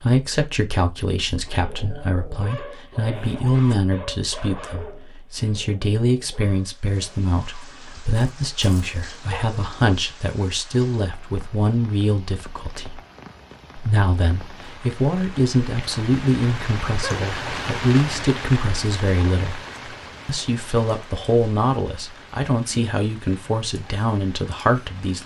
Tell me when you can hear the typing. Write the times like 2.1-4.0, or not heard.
not heard.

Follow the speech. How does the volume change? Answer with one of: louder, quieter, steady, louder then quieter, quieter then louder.
steady.